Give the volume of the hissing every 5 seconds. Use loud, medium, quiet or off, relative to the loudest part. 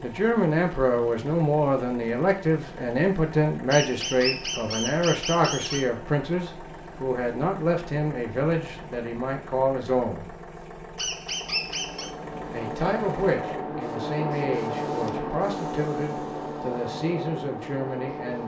off, off, loud, loud.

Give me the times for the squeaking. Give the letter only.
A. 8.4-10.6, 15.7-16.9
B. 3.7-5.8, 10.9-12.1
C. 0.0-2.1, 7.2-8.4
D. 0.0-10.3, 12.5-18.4
B.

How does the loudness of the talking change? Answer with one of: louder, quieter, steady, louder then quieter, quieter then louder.
quieter.